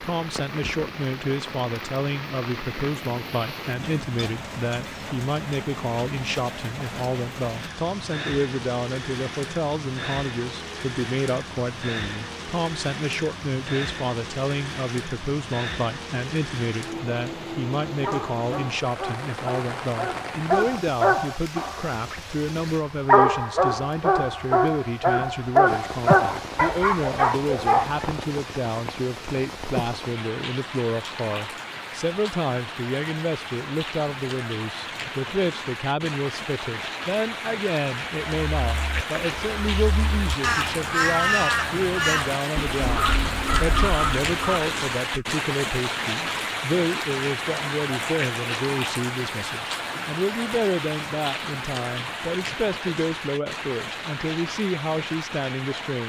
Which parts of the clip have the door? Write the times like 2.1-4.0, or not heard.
not heard.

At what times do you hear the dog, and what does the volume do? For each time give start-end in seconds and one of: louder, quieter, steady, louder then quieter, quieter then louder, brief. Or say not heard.
18.0-28.1 louder.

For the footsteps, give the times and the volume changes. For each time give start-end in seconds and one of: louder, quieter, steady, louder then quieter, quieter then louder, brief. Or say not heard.
not heard.